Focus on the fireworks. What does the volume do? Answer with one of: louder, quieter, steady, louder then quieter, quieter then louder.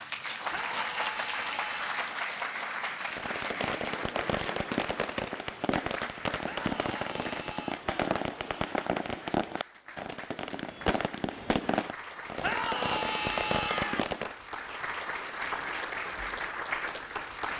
steady.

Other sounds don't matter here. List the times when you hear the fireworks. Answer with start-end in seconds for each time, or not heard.
3.1-14.3.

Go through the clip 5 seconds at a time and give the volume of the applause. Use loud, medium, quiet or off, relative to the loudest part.
loud, medium, medium, loud.